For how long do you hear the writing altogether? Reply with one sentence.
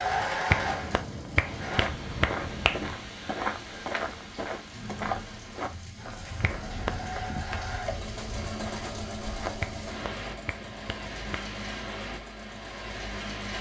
You can't hear the writing here.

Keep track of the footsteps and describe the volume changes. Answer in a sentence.
The loudness of the footsteps goes down.